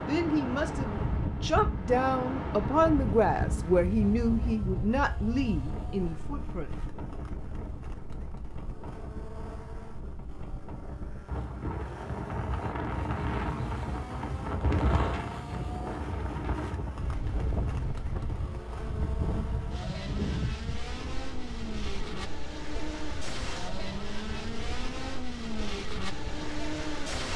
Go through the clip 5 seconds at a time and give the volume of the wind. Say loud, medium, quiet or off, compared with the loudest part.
loud, medium, loud, loud, medium, medium.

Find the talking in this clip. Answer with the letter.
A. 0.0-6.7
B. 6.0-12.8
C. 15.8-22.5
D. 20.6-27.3
A.